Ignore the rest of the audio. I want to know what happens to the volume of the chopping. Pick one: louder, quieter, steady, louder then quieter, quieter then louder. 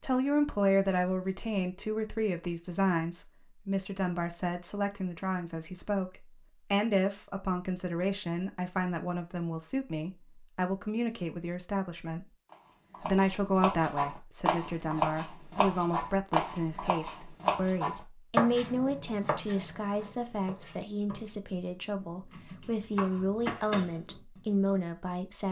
quieter then louder.